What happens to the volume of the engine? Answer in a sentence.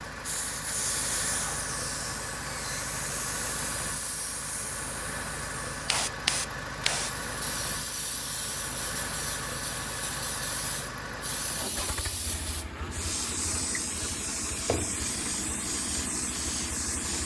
The loudness of the engine stays about the same.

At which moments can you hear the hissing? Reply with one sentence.
You can hear the hissing from 0.2 to 17.2 s.